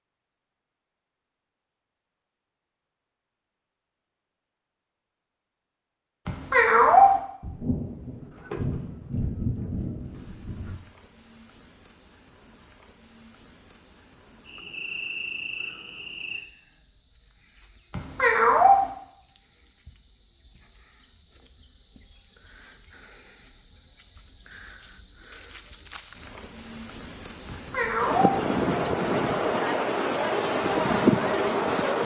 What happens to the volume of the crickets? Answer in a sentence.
The volume of the crickets goes up.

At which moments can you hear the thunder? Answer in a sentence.
The thunder can be heard from 7.4 to 10.8 s.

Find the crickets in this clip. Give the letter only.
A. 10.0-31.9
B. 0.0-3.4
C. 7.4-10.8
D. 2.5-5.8
A.